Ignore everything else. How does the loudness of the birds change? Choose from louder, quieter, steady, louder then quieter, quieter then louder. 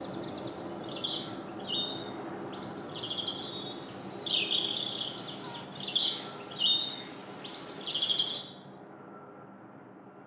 louder.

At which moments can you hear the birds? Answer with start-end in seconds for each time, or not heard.
0.0-8.4.